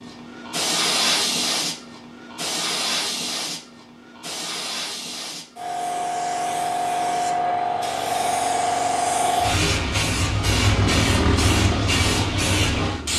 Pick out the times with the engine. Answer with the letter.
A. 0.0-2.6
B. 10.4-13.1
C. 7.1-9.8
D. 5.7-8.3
B.